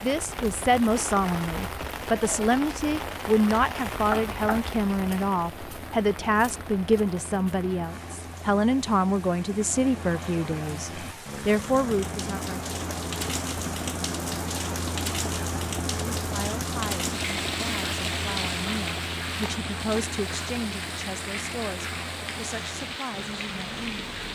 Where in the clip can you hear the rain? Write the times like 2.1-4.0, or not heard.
0.0-24.3.